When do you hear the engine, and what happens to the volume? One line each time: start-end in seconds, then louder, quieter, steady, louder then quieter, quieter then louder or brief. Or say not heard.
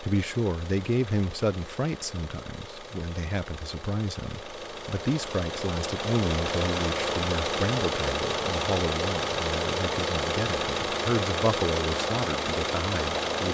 0.0-13.5 louder.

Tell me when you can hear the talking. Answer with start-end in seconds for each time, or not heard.
0.0-13.5.